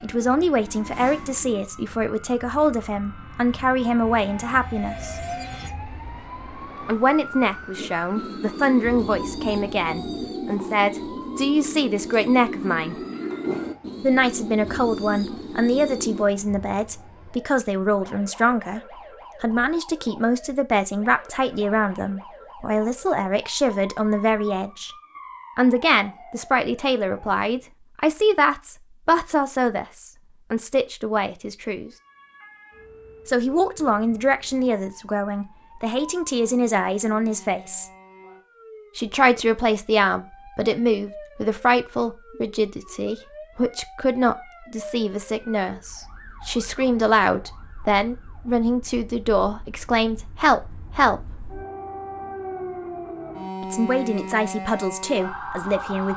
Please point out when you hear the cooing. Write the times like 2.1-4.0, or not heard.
7.8-16.2.